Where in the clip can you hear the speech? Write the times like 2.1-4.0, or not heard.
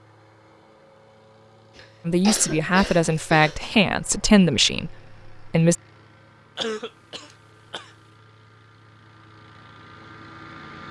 2.0-5.8.